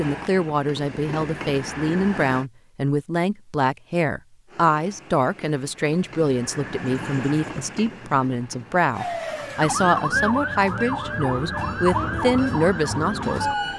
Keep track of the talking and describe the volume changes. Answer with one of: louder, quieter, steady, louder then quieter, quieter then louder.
steady.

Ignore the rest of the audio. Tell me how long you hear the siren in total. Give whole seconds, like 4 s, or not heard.
5 s.